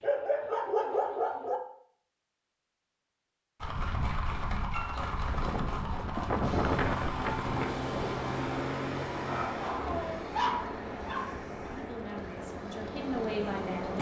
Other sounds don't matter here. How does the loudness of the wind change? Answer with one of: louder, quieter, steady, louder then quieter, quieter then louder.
quieter.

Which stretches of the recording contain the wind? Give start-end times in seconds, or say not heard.
5.3-13.9.